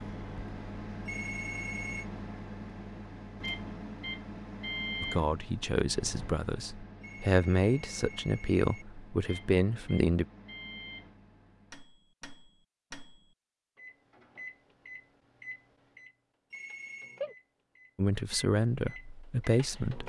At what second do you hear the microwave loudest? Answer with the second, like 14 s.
20 s.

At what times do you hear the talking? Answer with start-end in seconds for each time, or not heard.
5.0-10.2, 17.9-20.0.